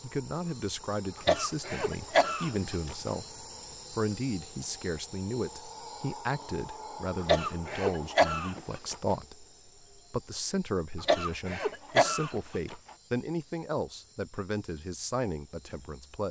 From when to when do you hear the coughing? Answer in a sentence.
You can hear the coughing from 1.1 to 3.0 s, from 7.2 to 9.2 s and from 11.0 to 12.8 s.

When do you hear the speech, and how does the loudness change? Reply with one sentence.
The speech can be heard from 0.0 to 16.2 s, at a steady volume.